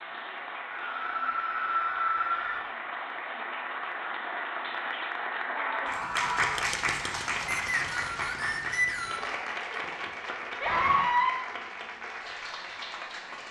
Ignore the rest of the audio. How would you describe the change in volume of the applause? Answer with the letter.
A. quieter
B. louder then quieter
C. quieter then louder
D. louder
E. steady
B.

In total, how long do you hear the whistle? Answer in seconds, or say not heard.
2 s.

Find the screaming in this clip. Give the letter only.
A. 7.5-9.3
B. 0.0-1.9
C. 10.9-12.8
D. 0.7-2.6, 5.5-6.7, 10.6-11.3
D.